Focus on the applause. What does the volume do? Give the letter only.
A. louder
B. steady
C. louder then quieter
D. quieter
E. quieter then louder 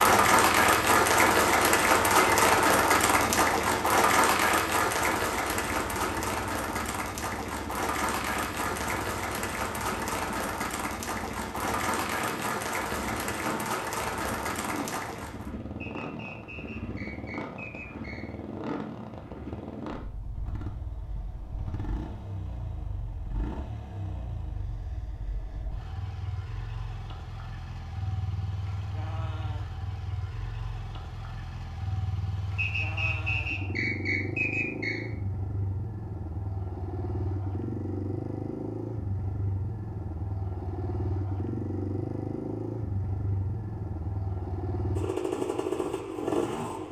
D.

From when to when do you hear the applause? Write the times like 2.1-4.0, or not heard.
0.0-15.5.